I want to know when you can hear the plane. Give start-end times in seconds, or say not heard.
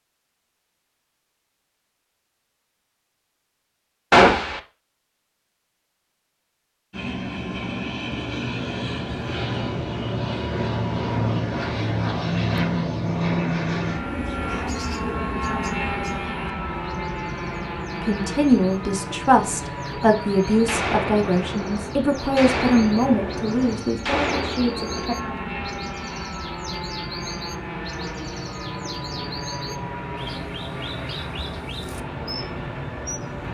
6.9-33.4.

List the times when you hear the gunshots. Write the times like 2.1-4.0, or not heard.
4.1-4.6, 20.6-25.3.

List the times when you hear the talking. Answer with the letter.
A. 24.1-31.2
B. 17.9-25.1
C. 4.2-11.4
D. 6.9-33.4
B.